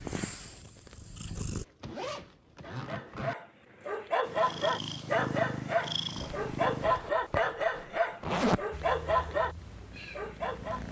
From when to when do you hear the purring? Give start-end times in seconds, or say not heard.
0.0-1.6, 4.2-7.0, 8.7-10.8.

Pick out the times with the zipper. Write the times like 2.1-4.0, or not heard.
1.4-3.4, 6.2-8.6.